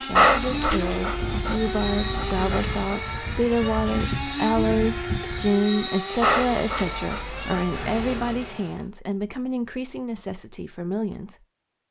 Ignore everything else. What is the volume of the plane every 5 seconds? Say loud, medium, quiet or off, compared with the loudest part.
loud, loud, off.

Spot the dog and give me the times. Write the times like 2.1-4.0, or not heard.
0.1-3.0, 6.2-8.4.